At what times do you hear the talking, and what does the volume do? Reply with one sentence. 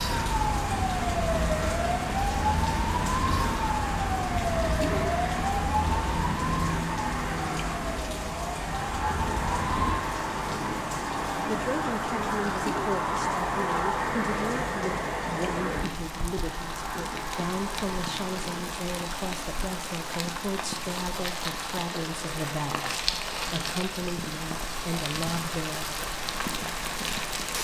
The talking can be heard from 11.4 to 26.0 s, at a steady volume.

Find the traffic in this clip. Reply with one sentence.
The traffic can be heard from 0.0 to 27.6 s.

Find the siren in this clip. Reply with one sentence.
You can hear the siren from 0.0 to 10.0 s.